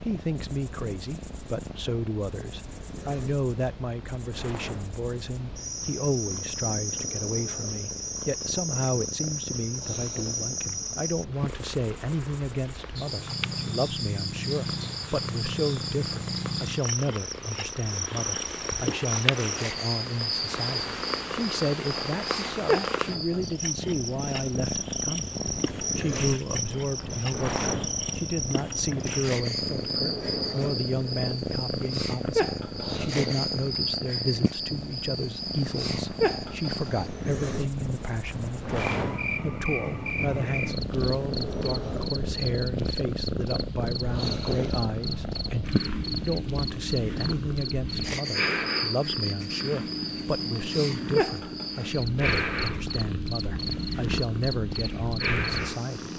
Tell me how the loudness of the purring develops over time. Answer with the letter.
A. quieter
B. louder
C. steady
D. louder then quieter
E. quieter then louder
B.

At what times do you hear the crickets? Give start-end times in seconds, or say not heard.
0.0-56.1.